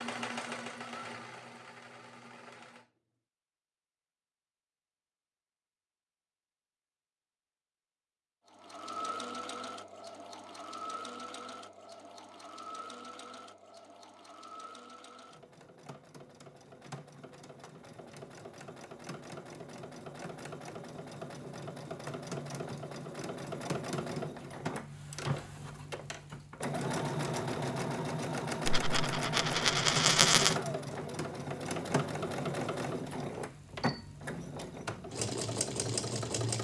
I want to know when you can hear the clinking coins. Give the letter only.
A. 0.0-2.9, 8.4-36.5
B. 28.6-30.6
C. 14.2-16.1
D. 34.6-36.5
B.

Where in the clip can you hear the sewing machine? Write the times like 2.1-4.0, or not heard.
0.0-2.9, 8.4-36.5.